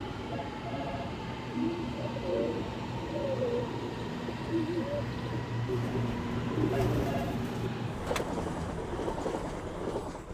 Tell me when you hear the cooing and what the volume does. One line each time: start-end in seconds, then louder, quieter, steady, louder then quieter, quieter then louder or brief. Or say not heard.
1.4-8.3 steady.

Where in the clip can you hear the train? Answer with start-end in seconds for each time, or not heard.
0.0-10.2.